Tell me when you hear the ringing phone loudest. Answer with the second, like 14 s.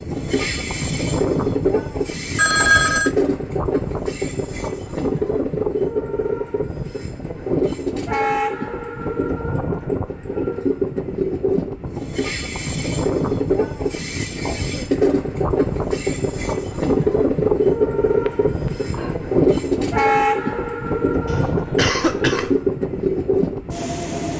3 s.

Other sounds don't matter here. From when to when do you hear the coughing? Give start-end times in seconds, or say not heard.
21.2-22.6.